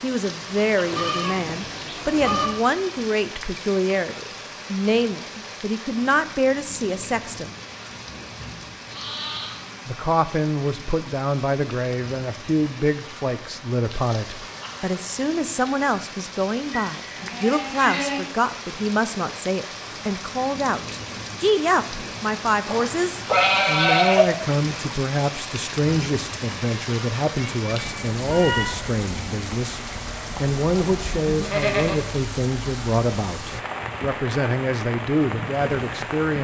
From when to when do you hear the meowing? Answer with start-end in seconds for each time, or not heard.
27.4-28.8.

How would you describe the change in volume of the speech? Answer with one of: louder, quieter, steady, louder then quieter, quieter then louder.
steady.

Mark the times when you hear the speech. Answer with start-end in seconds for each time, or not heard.
0.0-7.5, 9.8-29.8, 30.4-36.3.